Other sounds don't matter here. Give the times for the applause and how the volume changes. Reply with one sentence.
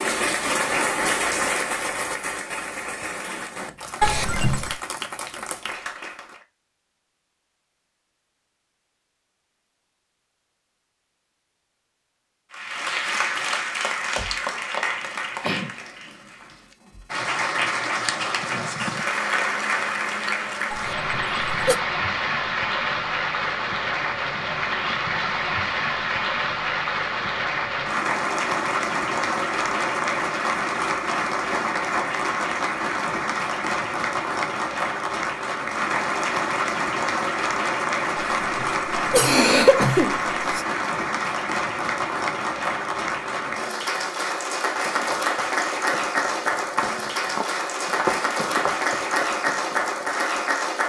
You can hear the applause from 0.0 to 6.5 s, getting quieter; and from 12.5 to 50.8 s, at a steady volume.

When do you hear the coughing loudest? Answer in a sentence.
The volume of the coughing peaks at 40 seconds.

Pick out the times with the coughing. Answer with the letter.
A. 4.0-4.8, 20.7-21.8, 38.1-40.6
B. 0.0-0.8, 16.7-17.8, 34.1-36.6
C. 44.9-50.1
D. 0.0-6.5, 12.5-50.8
A.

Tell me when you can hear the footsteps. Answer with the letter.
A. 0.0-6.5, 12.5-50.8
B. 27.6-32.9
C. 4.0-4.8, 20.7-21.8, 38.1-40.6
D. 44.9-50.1
D.